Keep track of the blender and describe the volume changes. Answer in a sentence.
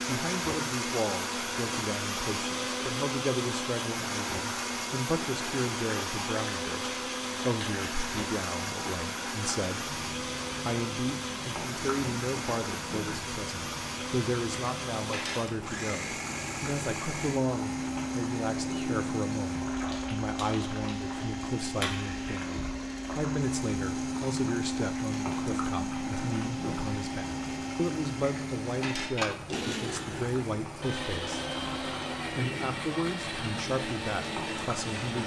The loudness of the blender stays about the same.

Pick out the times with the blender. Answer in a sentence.
You can hear the blender from 0.0 to 35.2 s.